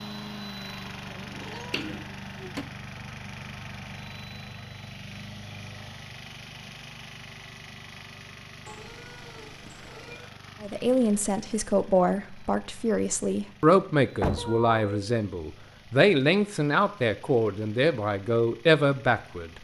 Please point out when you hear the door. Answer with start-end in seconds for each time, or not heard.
1.7-2.6, 14.2-14.6.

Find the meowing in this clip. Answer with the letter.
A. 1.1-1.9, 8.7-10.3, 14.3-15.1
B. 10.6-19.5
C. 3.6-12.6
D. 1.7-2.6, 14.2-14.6
A.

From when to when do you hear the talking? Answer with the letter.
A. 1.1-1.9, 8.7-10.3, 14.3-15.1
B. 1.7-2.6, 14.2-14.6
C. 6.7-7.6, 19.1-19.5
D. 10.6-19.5
D.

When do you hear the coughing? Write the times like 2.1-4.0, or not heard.
not heard.